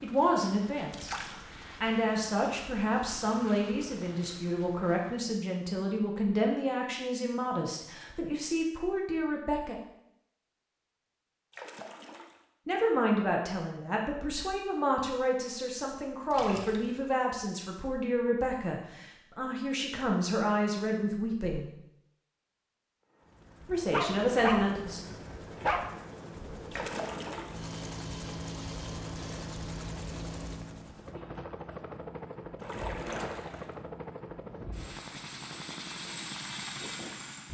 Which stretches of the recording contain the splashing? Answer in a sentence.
You can hear the splashing from 0.9 to 1.4 s, from 11.5 to 12.4 s, from 16.3 to 17.1 s, from 26.7 to 27.6 s and from 32.6 to 33.8 s.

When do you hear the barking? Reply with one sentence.
The barking can be heard from 23.9 to 25.9 s.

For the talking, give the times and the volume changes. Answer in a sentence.
You can hear the talking from 0.0 to 9.8 s, at a steady volume; from 12.7 to 21.7 s, at a steady volume; and briefly from 23.6 to 25.0 s.